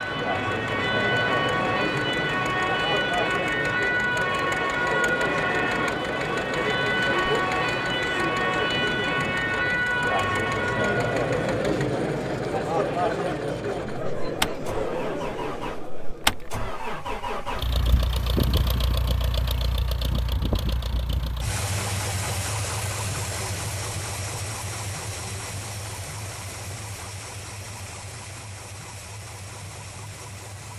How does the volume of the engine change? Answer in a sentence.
The volume of the engine goes up, then down.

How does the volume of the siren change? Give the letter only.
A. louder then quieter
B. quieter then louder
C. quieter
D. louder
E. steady
E.